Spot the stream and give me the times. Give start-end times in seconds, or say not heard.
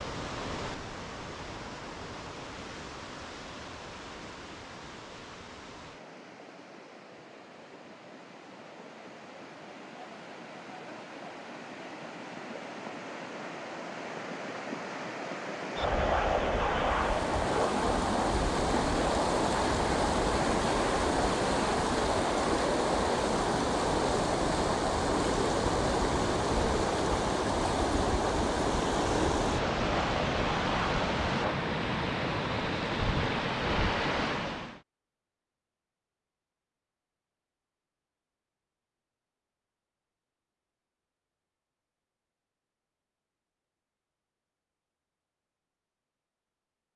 0.0-34.8.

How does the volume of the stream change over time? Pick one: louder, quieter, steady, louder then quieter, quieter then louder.
louder.